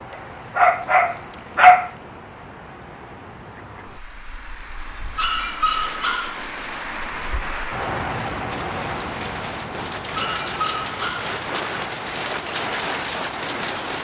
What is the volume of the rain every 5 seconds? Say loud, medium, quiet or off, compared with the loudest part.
off, medium, loud.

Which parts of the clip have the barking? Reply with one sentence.
You can hear the barking from 0.6 to 1.9 s, from 5.2 to 6.5 s and from 10.2 to 11.3 s.